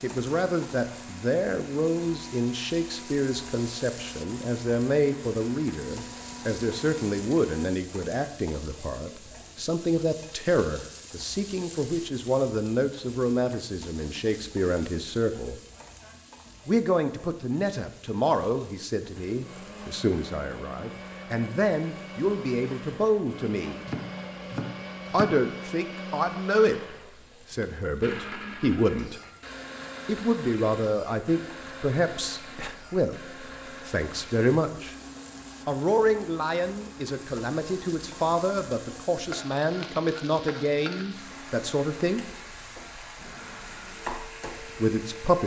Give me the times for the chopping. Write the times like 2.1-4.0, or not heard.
23.9-25.4.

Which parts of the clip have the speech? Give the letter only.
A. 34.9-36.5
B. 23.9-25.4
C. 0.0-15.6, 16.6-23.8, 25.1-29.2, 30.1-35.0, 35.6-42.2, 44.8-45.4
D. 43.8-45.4
C.